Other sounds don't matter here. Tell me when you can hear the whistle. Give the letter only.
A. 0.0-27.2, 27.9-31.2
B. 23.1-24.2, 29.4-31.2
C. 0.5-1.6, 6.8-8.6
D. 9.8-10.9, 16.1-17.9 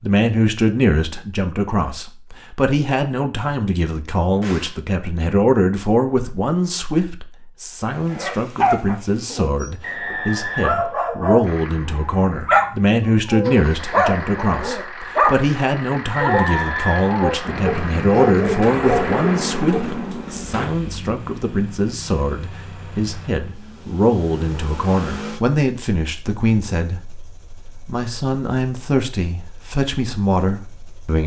D.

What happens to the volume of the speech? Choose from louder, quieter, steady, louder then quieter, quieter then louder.
steady.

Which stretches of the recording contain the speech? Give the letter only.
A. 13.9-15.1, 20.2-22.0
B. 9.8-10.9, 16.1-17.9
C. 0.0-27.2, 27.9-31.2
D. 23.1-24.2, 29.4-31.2
C.